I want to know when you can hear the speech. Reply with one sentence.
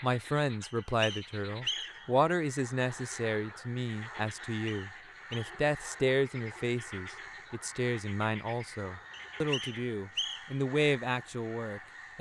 You can hear the speech from 0.0 to 12.1 s.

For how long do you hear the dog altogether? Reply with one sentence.
You can't hear the dog here.